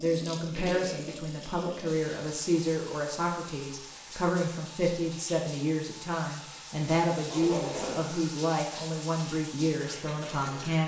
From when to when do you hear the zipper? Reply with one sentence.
The zipper can be heard from 0.5 to 1.1 s and from 7.2 to 8.1 s.